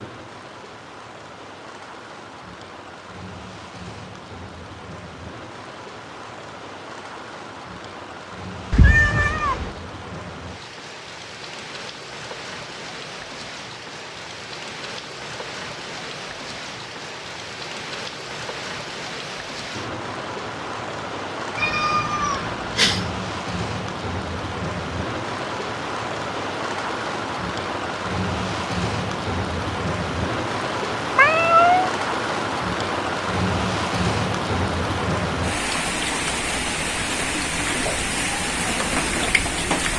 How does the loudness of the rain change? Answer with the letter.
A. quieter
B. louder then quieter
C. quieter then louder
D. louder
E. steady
D.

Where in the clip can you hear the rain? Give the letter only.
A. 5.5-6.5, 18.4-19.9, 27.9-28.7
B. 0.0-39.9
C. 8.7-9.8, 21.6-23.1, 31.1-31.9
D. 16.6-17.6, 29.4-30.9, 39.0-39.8
B.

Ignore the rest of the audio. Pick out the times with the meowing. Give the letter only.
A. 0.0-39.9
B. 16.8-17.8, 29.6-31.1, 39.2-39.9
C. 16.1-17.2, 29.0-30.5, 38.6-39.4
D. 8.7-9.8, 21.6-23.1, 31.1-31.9
D.